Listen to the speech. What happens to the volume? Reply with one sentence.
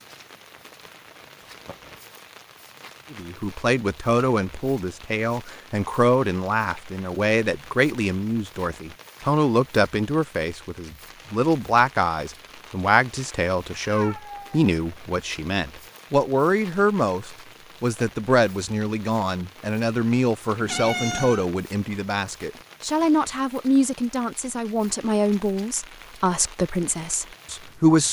The loudness of the speech stays about the same.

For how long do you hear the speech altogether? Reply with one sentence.
The speech can be heard for 25 seconds in total.